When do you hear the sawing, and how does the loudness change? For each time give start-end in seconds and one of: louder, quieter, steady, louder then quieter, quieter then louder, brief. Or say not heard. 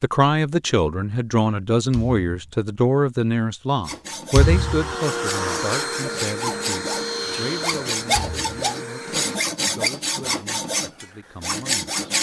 3.8-12.1 louder.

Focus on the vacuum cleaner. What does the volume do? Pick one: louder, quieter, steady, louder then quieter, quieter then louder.
quieter.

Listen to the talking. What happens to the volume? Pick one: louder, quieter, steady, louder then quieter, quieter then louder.
quieter.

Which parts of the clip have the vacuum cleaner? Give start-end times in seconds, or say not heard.
4.3-9.4.